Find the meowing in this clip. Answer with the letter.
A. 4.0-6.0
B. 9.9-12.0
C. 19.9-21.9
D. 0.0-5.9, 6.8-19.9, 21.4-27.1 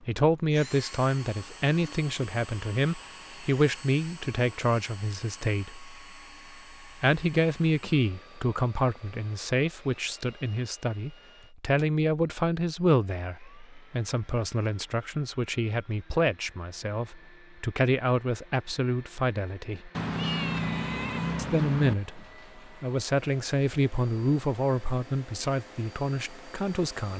C.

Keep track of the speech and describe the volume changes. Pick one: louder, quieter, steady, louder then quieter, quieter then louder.
steady.